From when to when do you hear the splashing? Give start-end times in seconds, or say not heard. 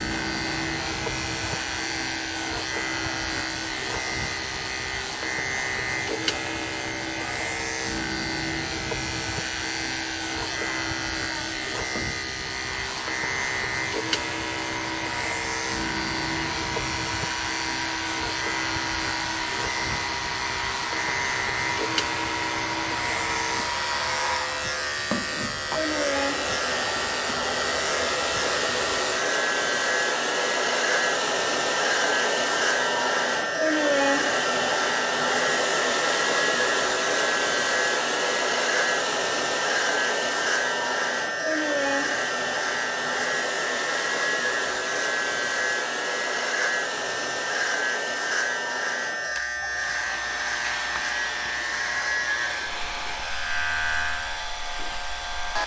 not heard.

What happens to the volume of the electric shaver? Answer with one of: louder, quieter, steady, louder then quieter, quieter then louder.
steady.